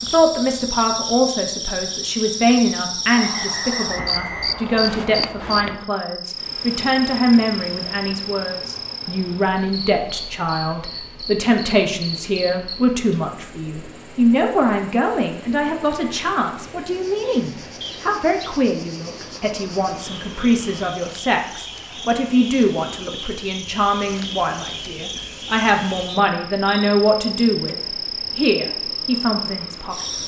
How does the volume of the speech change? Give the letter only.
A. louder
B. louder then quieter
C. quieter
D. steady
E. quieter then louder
D.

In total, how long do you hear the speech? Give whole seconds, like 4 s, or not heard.
30 s.